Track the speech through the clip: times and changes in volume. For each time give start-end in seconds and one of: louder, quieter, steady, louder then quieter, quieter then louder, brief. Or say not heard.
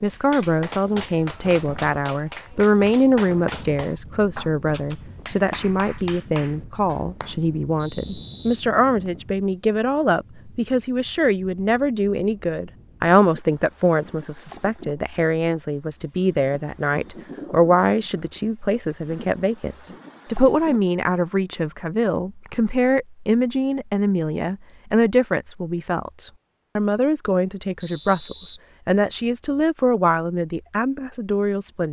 0.0-31.8 steady.